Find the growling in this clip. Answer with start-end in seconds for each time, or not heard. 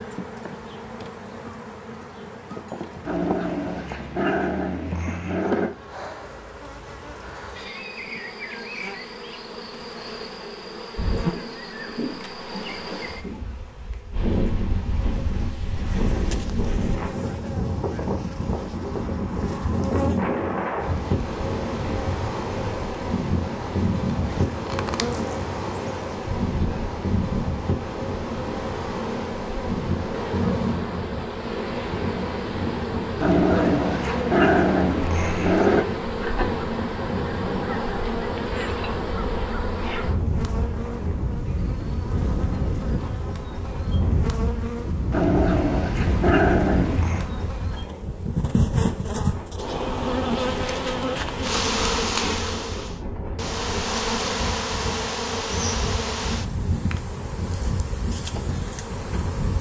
3.0-5.8, 33.2-35.9, 45.1-47.3.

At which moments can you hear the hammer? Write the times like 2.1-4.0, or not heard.
not heard.